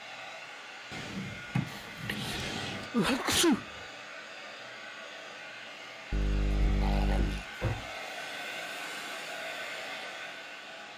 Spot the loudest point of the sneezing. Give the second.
3 s.